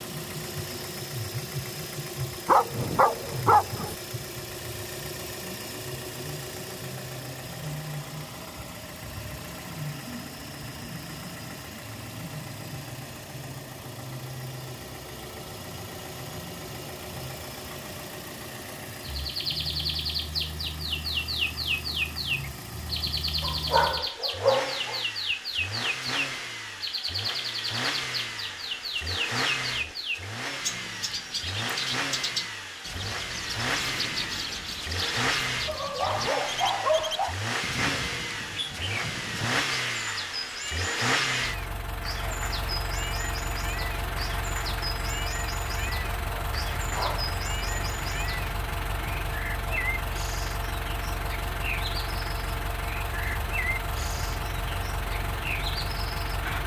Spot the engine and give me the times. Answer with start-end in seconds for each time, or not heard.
0.0-56.6.